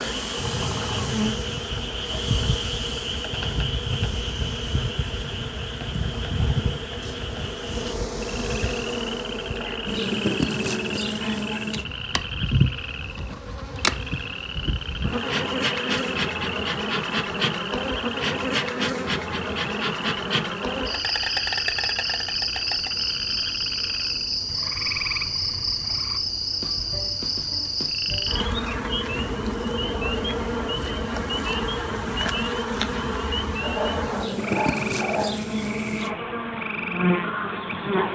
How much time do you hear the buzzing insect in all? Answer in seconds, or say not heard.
38 s.